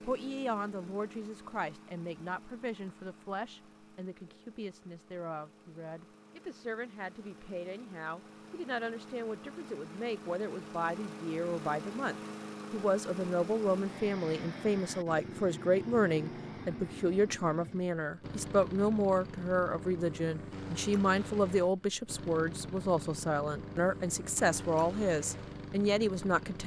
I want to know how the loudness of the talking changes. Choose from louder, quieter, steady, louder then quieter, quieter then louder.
louder.